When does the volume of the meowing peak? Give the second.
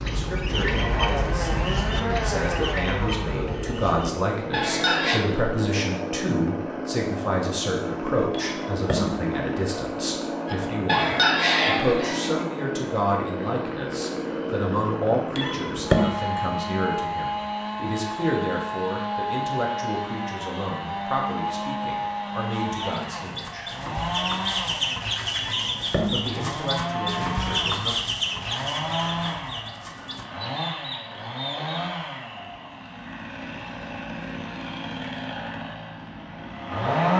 16 s.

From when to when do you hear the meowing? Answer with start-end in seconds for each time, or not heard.
8.3-9.2, 15.3-16.1, 25.4-26.4.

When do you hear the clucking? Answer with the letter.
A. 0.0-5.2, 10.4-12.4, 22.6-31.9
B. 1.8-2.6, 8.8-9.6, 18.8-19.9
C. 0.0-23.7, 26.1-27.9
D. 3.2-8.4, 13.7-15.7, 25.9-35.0
A.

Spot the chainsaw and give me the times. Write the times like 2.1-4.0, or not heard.
0.0-37.1.